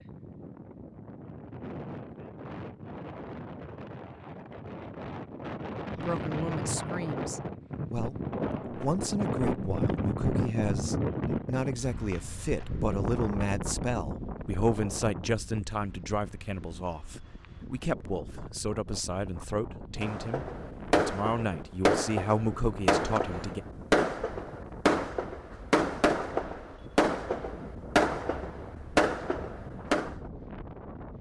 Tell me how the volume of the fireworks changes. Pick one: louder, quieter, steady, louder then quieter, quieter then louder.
steady.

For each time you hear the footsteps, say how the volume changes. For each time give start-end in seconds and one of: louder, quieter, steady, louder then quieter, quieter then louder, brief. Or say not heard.
not heard.